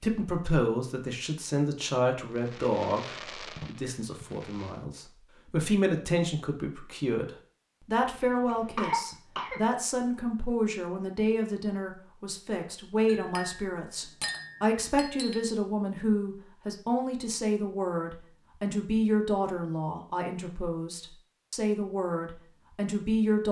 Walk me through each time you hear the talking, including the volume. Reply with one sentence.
You can hear the talking from 0.0 to 23.4 s, at a steady volume.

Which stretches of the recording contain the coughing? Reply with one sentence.
You can hear the coughing from 8.0 to 9.6 s.